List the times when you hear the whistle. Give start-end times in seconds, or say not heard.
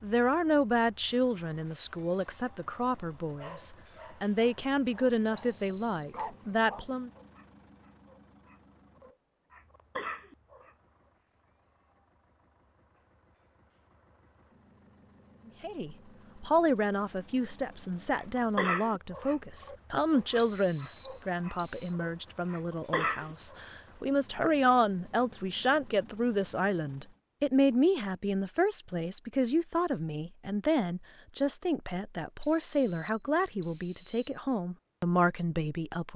5.3-6.0, 20.4-21.9, 32.4-34.4.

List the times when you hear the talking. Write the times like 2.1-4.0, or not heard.
0.0-7.1, 15.6-36.1.